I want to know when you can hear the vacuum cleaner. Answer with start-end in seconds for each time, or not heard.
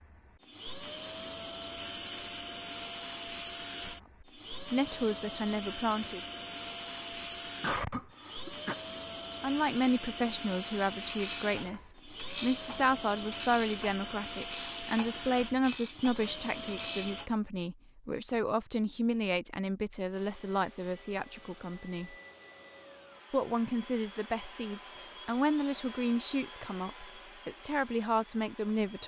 0.0-17.3, 20.1-29.0.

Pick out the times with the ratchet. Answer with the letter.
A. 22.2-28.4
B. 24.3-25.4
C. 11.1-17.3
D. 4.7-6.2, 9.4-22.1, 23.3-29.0
C.